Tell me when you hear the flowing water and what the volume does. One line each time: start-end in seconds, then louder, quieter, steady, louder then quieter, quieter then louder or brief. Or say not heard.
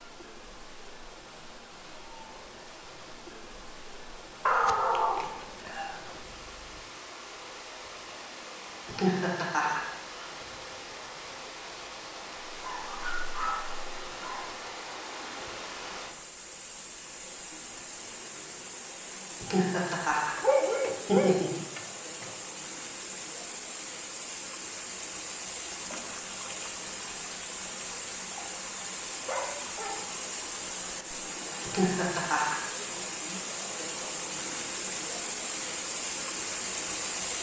0.0-37.3 louder.